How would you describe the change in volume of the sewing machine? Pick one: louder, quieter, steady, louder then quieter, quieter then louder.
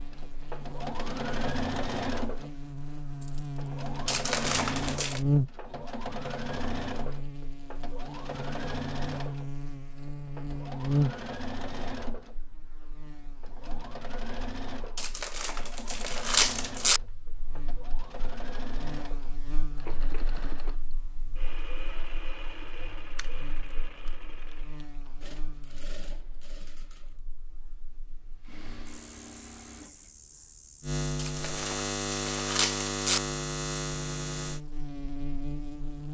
quieter.